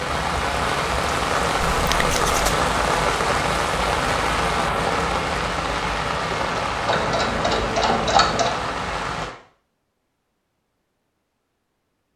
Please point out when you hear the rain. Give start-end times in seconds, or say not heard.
0.0-9.3.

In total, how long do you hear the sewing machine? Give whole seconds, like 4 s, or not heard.
2 s.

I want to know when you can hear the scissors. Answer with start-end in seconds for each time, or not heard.
1.7-2.6.